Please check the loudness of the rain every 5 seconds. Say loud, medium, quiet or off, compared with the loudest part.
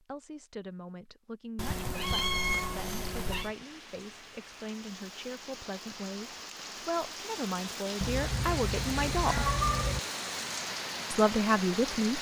quiet, loud, loud.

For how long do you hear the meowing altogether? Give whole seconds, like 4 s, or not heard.
4 s.